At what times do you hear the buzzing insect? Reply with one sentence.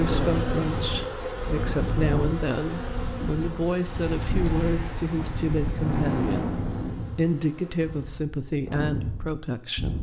The buzzing insect can be heard from 0.0 to 8.2 s.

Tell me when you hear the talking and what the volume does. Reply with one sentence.
You can hear the talking from 0.0 to 9.9 s, at a steady volume.